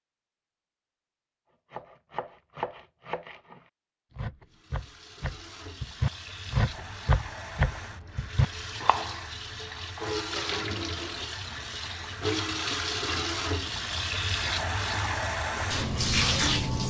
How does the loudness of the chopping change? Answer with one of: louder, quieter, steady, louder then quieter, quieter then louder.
louder.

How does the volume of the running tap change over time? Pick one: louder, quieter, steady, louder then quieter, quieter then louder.
louder.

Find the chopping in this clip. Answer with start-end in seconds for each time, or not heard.
1.7-9.2.